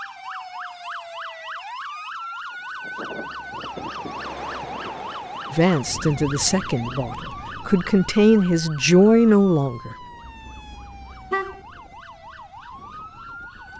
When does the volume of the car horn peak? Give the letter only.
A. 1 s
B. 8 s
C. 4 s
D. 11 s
D.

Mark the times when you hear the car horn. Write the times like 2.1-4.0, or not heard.
10.2-11.7.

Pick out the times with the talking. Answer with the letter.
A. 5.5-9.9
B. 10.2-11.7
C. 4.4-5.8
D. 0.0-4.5
A.